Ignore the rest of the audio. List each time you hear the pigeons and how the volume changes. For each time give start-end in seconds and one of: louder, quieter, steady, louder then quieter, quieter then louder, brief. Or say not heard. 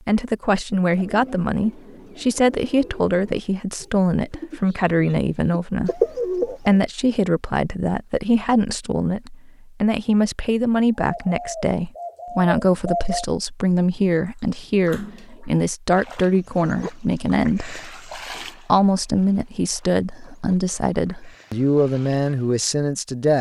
0.9-6.8 louder
11.0-13.2 brief.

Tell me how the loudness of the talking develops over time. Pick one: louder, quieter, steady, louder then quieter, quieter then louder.
steady.